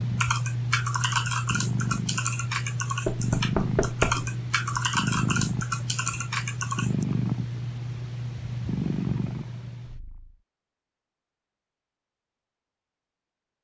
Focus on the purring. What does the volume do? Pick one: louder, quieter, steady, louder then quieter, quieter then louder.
steady.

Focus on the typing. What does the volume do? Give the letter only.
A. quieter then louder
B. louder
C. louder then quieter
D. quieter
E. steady
E.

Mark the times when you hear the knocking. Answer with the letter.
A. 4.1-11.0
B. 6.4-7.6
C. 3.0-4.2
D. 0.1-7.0
C.